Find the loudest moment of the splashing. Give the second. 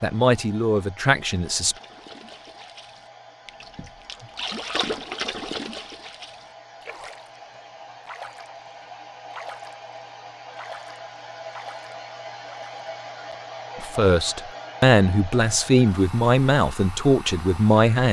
5 s.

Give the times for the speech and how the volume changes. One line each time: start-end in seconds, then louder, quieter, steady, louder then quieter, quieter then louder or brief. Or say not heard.
0.0-1.8 brief
13.8-18.0 steady.